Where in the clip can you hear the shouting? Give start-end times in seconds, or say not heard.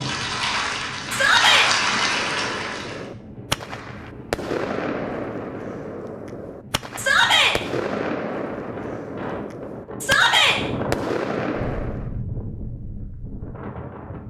1.1-1.7, 7.0-7.5, 10.0-10.6.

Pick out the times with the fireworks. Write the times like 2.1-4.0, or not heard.
1.9-12.2.